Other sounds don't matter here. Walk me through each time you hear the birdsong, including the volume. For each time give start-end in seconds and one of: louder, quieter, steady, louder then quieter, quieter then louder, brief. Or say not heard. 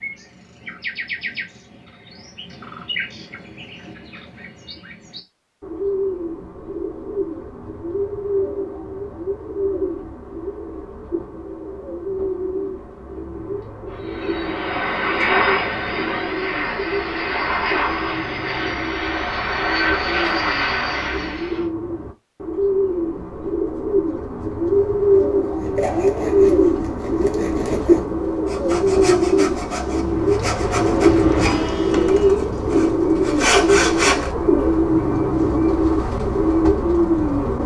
0.0-37.6 louder.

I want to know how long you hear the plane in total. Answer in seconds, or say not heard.
10 s.